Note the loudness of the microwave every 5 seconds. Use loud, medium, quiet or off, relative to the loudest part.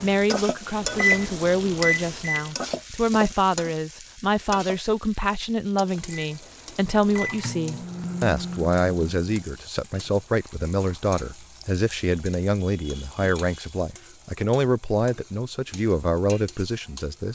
loud, medium, off, off.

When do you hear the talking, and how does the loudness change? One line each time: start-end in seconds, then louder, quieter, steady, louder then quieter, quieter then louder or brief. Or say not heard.
0.0-17.3 steady.